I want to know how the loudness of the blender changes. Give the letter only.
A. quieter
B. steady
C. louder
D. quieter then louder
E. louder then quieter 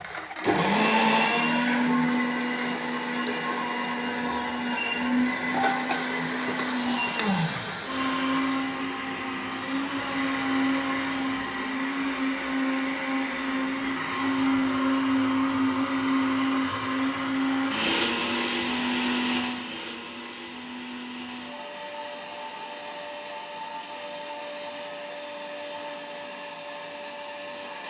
A.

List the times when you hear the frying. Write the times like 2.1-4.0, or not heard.
0.0-8.2.